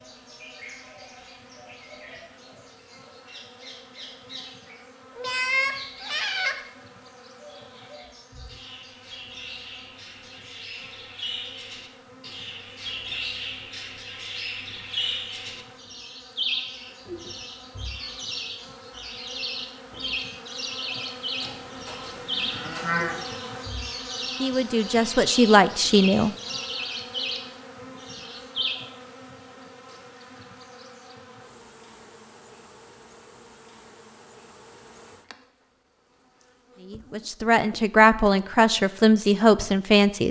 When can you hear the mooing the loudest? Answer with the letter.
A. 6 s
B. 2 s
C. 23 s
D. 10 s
C.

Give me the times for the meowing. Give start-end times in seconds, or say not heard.
5.2-6.5.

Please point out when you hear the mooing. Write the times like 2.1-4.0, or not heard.
21.4-23.2.